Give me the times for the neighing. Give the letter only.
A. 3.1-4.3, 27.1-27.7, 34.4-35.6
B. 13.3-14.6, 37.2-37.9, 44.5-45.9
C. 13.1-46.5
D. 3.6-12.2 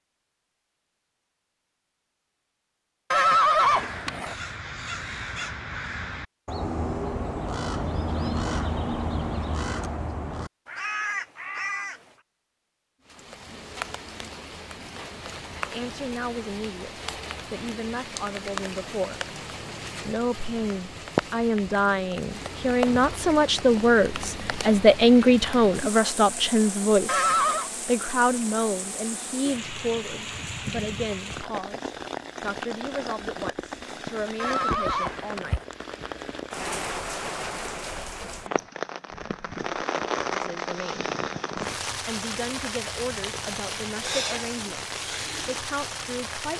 A.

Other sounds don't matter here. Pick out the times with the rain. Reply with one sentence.
The rain can be heard from 13.1 to 46.5 s.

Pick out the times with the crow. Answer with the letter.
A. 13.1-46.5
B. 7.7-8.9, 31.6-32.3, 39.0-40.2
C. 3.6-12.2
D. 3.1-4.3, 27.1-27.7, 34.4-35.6
C.